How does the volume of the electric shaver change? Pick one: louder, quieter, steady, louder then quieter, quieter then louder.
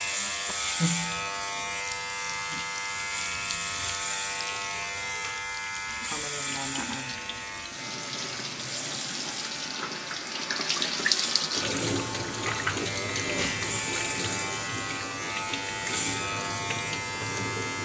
quieter then louder.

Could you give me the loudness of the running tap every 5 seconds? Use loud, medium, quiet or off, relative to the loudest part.
medium, medium, loud, medium.